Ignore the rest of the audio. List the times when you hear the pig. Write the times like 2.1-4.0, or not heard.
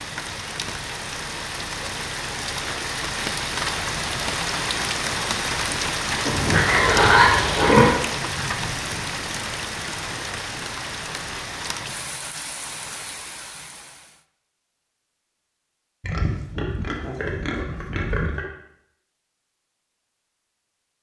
6.2-8.0, 16.0-18.5.